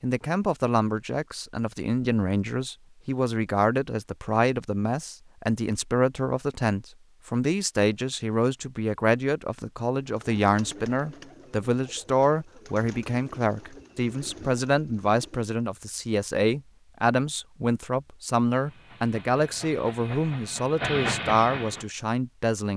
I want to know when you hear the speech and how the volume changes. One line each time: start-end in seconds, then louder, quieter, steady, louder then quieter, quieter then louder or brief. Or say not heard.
0.0-22.7 steady.